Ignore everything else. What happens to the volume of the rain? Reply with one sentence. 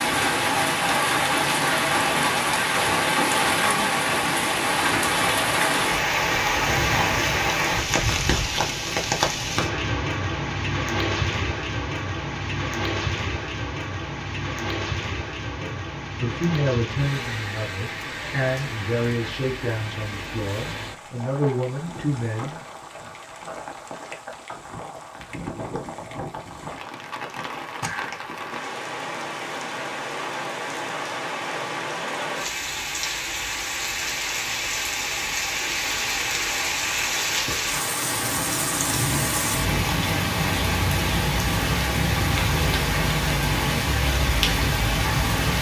The loudness of the rain goes down, then up.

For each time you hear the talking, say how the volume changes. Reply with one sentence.
You can hear the talking from 15.6 to 22.6 s, getting quieter then louder.